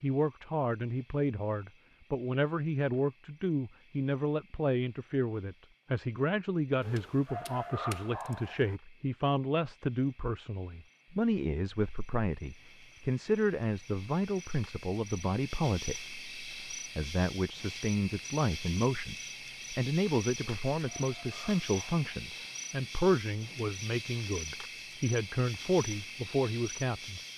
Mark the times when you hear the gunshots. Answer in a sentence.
The gunshots can't be heard in this clip.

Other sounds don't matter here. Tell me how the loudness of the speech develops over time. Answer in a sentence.
The volume of the speech stays about the same.